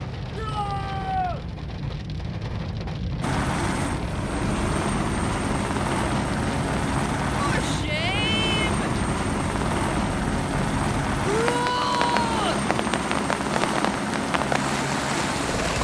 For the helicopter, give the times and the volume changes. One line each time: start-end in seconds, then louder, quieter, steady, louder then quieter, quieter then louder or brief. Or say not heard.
3.2-15.7 steady.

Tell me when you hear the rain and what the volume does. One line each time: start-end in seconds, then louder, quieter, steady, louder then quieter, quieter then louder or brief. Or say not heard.
0.0-15.7 steady.